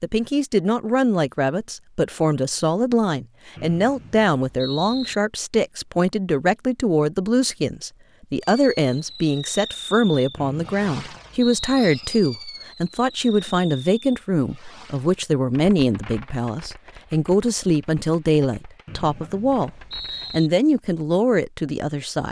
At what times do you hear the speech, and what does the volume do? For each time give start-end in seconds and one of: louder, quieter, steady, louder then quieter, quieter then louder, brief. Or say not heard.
0.0-19.7 steady
20.3-22.2 brief.